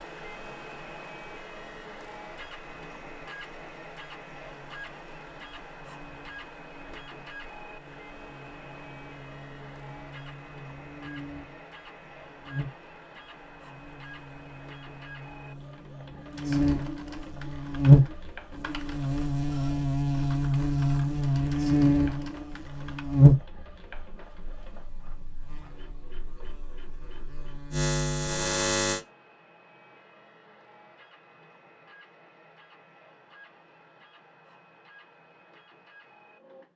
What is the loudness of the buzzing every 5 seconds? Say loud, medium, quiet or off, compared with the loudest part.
quiet, quiet, quiet, loud, loud, medium, off, off.